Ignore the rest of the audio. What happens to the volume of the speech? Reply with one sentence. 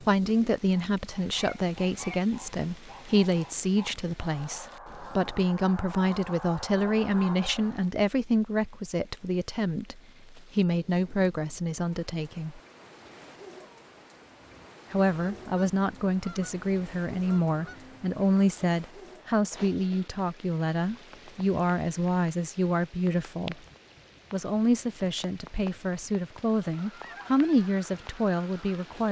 The loudness of the speech stays about the same.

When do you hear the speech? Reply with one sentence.
The speech can be heard from 0.0 to 12.6 s, from 14.9 to 23.6 s and from 24.3 to 29.0 s.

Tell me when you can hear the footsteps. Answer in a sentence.
You can't hear the footsteps here.